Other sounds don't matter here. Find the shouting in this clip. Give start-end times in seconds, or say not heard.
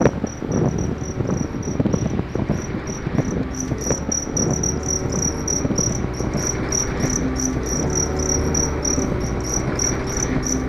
not heard.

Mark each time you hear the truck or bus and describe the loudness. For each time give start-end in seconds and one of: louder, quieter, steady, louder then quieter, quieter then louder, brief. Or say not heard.
0.1-10.6 louder.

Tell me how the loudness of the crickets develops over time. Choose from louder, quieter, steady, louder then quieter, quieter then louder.
louder.